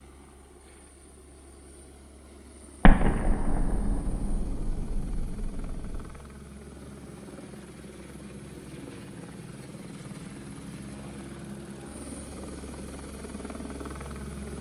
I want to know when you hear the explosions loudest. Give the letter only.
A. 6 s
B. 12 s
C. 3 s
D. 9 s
C.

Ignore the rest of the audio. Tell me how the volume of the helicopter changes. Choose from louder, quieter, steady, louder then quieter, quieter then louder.
louder.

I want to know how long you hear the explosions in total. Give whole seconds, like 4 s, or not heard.
3 s.